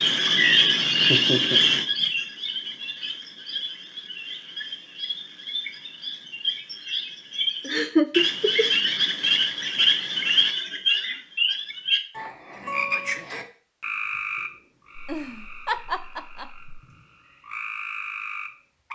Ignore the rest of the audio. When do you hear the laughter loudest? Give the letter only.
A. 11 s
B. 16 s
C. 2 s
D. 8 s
D.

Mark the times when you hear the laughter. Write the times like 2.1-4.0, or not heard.
1.1-1.6, 7.7-8.7, 14.9-16.8.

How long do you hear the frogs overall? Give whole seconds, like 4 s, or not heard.
19 s.